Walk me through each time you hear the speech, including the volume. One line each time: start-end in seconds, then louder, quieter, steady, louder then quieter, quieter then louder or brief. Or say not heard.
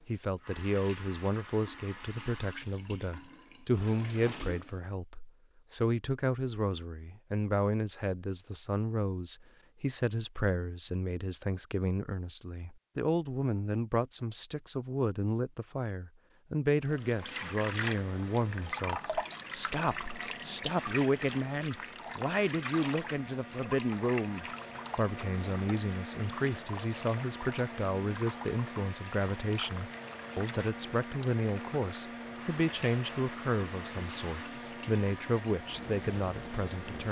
0.1-37.0 steady.